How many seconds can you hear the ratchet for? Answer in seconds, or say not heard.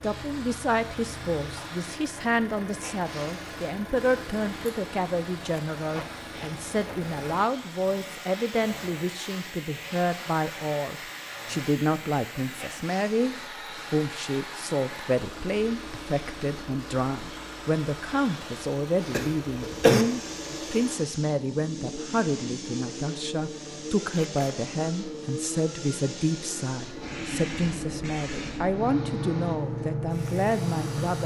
not heard.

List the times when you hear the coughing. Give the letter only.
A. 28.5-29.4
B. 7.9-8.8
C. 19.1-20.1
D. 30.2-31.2
C.